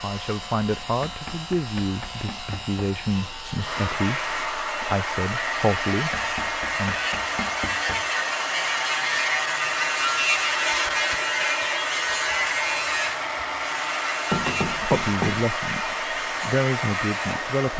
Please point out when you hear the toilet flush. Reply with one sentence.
The toilet flush can't be heard in this clip.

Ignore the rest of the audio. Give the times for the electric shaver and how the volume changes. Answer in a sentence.
You can hear the electric shaver from 0.0 to 17.4 s, getting louder then quieter.